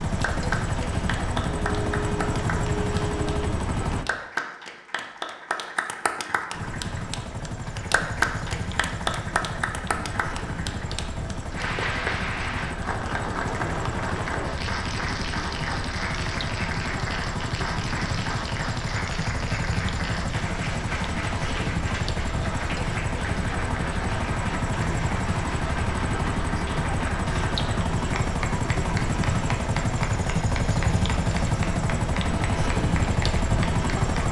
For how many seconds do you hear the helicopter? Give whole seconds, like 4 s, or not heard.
32 s.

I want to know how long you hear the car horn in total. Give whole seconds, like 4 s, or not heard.
2 s.